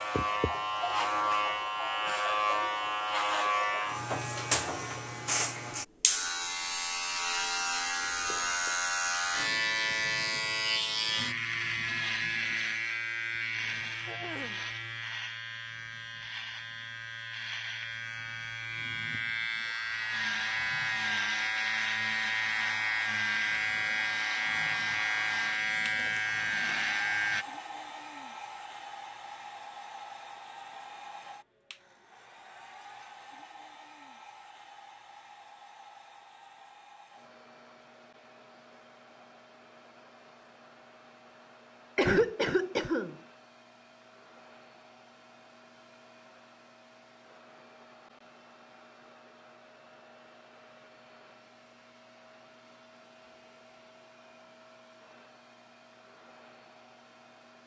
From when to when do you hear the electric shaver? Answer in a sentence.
You can hear the electric shaver from 0.0 to 27.4 s.